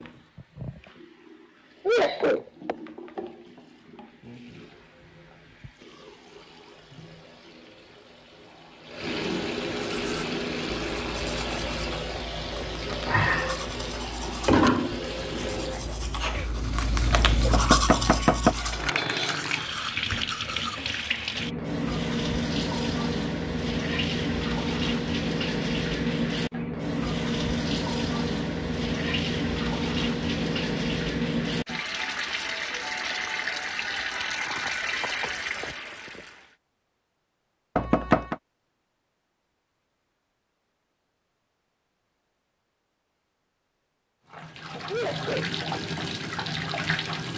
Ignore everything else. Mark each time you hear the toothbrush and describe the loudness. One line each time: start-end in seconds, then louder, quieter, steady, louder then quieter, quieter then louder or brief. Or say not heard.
9.7-20.9 louder then quieter.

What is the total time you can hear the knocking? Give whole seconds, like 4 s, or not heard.
2 s.